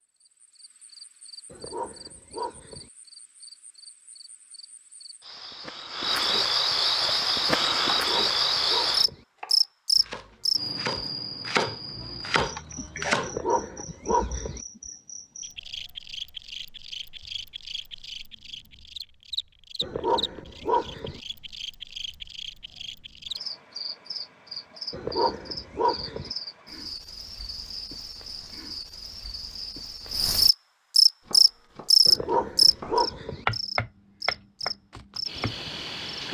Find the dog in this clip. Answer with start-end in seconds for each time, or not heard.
1.5-2.9, 7.9-9.2, 13.2-14.6, 19.8-21.2, 24.9-26.3, 32.0-33.5.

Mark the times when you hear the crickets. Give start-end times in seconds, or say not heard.
0.2-36.3.